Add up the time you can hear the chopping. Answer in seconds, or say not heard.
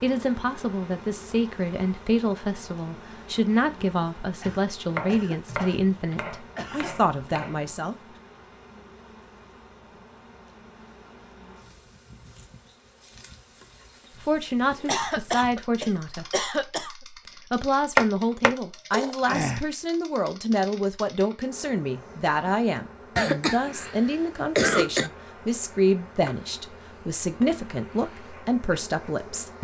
4 s.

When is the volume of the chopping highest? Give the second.
18 s.